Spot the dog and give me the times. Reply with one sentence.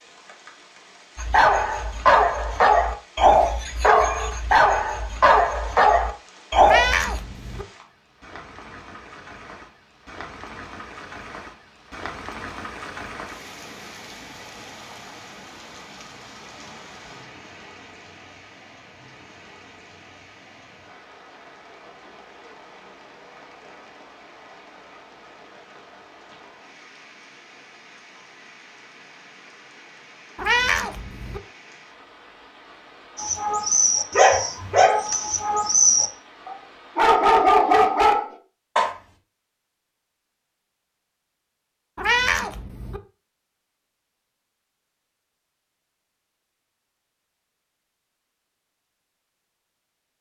The dog can be heard from 1.1 to 7.2 s and from 33.1 to 38.9 s.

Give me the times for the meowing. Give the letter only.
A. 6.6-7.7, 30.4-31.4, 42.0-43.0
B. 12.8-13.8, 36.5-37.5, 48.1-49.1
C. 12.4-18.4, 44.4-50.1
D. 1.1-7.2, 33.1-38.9
A.